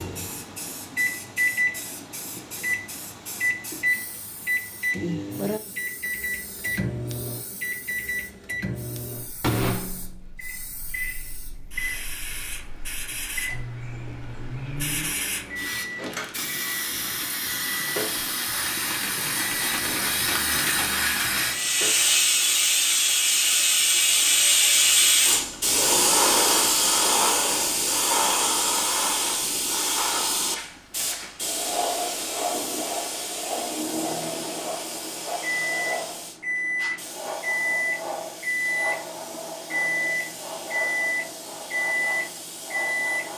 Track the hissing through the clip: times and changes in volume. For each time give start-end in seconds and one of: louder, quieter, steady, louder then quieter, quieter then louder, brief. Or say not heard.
0.0-43.3 louder then quieter.